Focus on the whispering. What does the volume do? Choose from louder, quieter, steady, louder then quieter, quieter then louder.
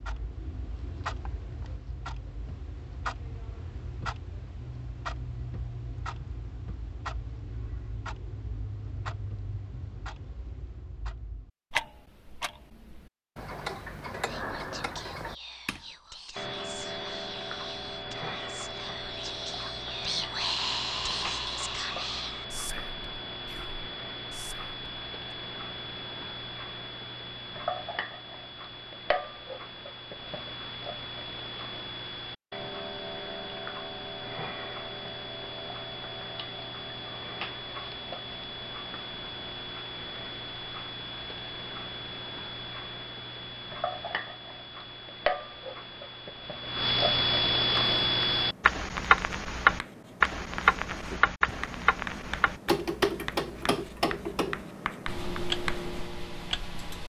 louder then quieter.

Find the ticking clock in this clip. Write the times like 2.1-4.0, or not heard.
0.0-57.0.